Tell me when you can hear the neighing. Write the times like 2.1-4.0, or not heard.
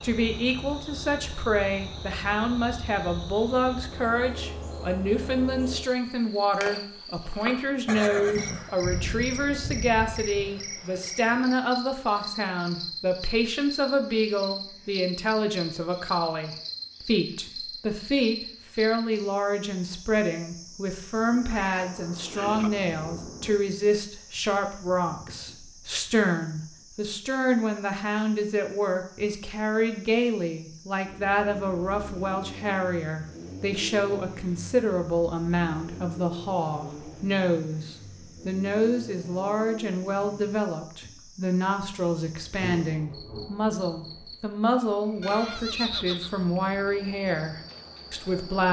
7.8-8.8, 21.4-22.7, 45.2-47.0.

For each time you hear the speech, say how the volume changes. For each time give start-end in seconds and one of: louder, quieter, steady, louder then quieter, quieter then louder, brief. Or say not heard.
0.0-48.6 steady.